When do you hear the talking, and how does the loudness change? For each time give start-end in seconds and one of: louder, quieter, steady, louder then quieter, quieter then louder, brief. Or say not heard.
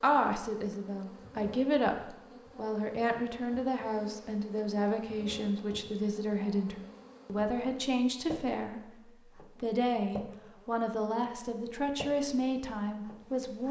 0.0-13.6 steady.